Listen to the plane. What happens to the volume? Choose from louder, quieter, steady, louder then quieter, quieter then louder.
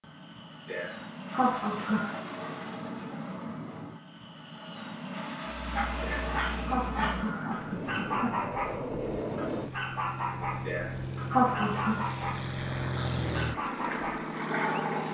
louder.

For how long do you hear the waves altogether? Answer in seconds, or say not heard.
not heard.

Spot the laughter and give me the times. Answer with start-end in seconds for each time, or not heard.
0.7-2.2, 6.0-8.3, 10.7-12.0.